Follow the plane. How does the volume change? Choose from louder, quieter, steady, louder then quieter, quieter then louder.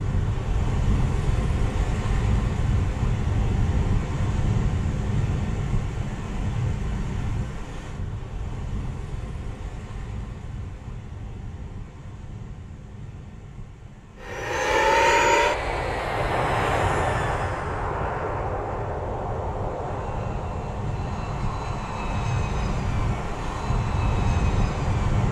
quieter.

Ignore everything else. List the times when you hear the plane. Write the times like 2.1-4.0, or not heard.
14.2-25.2.